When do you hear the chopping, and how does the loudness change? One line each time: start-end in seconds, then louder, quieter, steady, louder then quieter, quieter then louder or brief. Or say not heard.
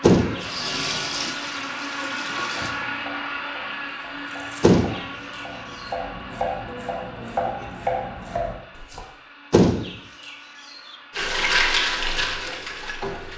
2.4-9.0 louder.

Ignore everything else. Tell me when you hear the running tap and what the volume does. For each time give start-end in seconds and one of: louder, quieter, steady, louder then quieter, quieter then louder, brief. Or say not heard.
0.2-4.8 quieter
11.2-13.3 brief.